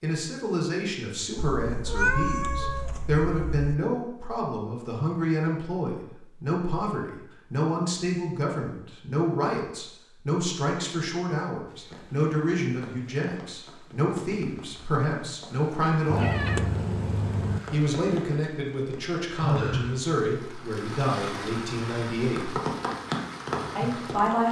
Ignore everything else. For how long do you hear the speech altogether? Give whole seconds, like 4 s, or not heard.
22 s.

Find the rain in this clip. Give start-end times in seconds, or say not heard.
11.7-24.4.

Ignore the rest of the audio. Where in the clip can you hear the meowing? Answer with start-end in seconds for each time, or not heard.
1.4-3.8, 16.1-17.6.